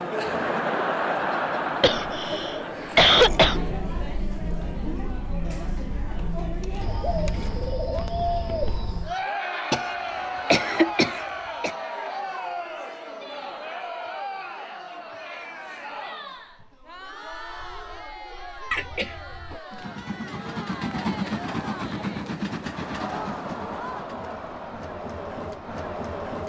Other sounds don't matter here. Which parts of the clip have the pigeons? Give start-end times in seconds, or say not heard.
6.8-9.2.